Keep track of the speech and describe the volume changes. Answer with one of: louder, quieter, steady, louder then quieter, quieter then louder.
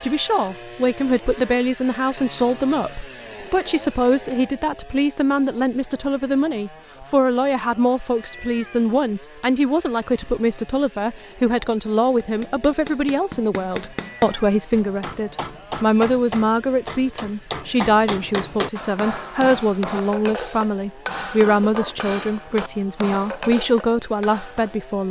steady.